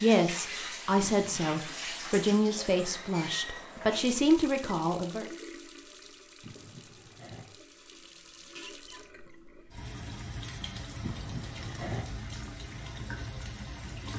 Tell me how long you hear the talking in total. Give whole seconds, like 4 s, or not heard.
5 s.